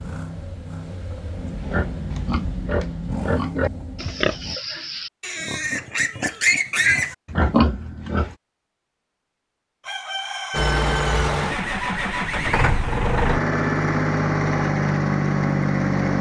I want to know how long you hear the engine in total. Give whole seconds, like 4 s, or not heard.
10 s.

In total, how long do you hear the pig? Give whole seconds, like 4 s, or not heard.
7 s.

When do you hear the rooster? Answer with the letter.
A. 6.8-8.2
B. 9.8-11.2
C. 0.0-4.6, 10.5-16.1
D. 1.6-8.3
B.